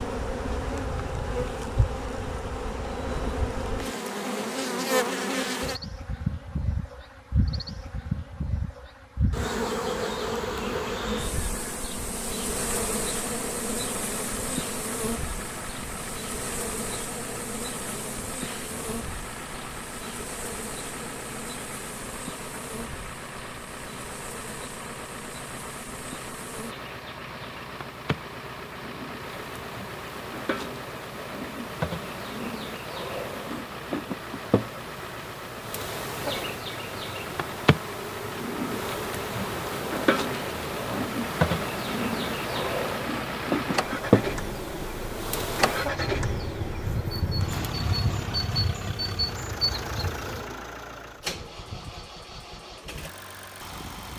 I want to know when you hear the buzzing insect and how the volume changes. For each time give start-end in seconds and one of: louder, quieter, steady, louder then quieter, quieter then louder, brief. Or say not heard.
0.0-50.5 quieter then louder.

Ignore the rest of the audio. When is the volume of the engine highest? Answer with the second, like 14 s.
46 s.